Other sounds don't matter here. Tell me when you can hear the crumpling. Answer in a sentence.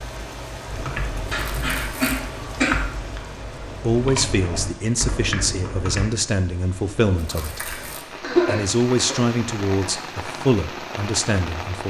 The crumpling can be heard from 1.4 to 2.2 s and from 7.2 to 8.1 s.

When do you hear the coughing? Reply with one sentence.
The coughing can be heard from 1.3 to 2.8 s and from 8.2 to 9.2 s.